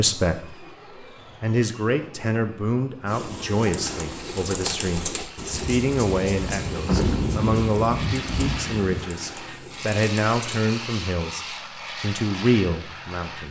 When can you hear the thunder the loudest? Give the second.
7 s.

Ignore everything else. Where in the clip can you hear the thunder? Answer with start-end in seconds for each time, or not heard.
5.5-9.1.